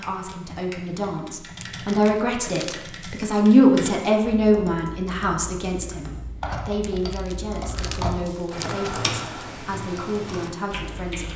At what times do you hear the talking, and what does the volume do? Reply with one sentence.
The talking can be heard from 0.0 to 11.3 s, getting louder then quieter.